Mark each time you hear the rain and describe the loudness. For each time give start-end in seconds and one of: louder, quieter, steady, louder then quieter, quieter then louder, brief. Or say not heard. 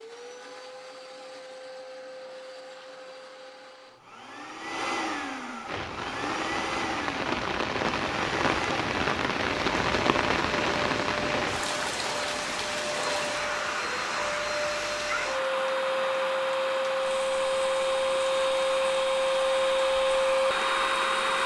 5.7-21.2 quieter.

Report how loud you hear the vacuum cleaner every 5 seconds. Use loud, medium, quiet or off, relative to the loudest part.
quiet, medium, medium, loud, loud.